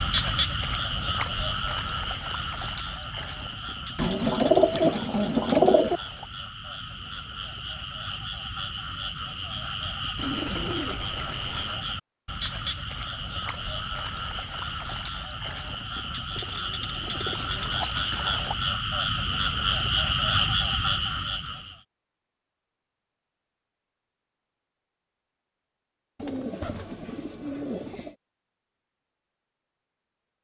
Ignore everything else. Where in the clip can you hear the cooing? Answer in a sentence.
You can hear the cooing from 4.0 to 6.0 s, from 10.2 to 11.8 s, from 16.4 to 17.9 s and from 26.1 to 28.1 s.